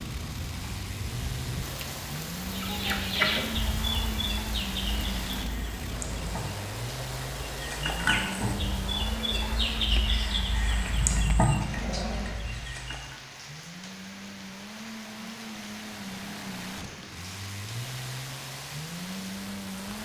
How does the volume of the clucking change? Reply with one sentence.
The loudness of the clucking goes down, then up.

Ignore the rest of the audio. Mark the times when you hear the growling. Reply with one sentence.
The growling can be heard from 11.6 to 12.4 s.